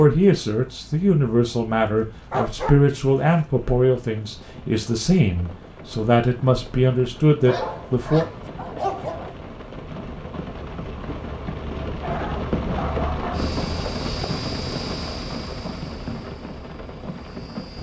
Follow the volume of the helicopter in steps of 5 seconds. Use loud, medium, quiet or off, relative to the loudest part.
off, off, loud, medium.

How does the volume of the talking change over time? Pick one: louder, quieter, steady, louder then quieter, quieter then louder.
steady.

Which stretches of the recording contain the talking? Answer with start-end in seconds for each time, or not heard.
0.0-8.2.